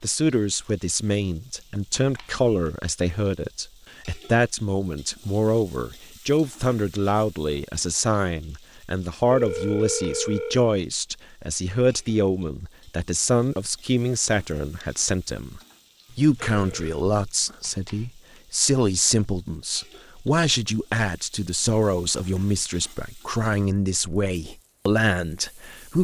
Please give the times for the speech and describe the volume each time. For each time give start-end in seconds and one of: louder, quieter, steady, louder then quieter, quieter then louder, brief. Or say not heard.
0.0-25.9 steady.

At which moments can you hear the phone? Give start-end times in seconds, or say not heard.
9.3-10.7, 16.1-17.1.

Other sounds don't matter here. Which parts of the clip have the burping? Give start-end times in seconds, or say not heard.
not heard.